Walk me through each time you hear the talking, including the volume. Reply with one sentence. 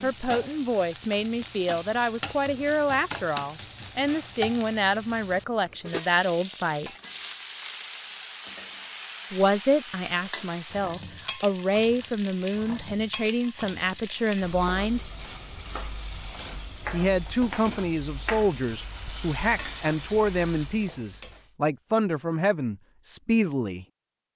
You can hear the talking from 0.0 to 6.9 s, at a steady volume; from 9.3 to 15.1 s, at a steady volume; and from 16.9 to 23.9 s, at a steady volume.